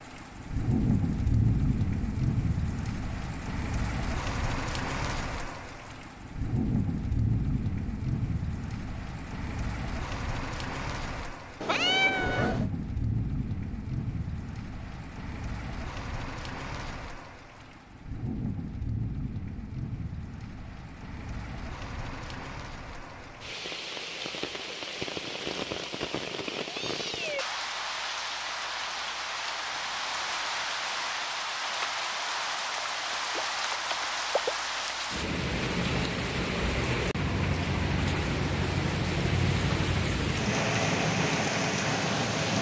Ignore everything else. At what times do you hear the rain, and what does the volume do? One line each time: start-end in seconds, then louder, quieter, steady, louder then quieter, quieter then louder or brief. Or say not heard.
0.0-42.5 quieter then louder.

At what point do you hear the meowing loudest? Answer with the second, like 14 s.
12 s.